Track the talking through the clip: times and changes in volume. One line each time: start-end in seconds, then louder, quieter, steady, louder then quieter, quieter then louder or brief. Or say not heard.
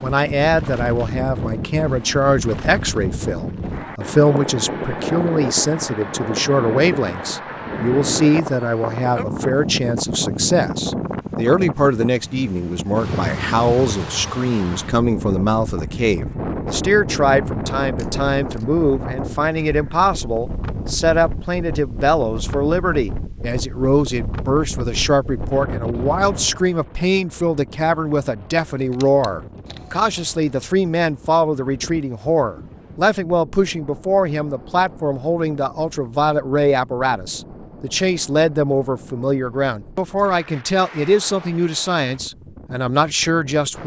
0.0-43.8 steady.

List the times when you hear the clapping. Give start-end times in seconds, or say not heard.
not heard.